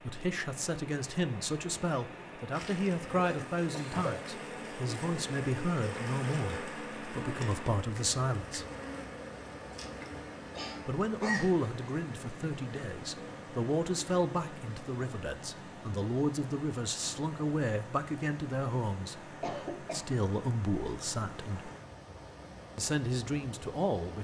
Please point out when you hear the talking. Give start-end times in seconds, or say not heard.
0.0-8.7, 10.8-21.7, 22.8-24.1.